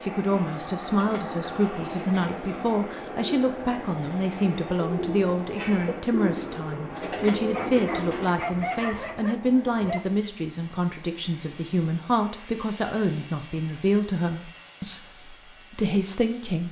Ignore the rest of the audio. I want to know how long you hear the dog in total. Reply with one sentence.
The dog can be heard for 3 seconds in total.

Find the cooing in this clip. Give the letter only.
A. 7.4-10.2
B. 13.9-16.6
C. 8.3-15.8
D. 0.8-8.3
D.